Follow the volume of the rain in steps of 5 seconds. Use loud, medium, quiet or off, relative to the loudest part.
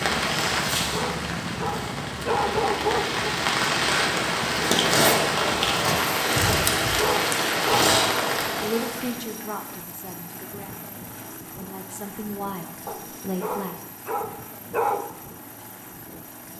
loud, loud, off, off.